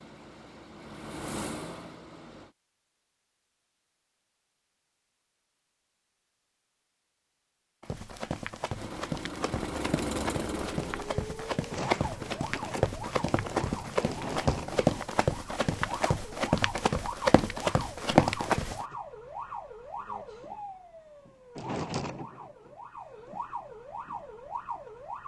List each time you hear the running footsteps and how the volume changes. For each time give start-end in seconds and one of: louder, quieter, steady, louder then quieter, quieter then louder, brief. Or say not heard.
7.8-18.9 louder.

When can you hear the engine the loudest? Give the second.
10 s.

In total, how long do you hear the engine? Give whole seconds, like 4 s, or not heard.
5 s.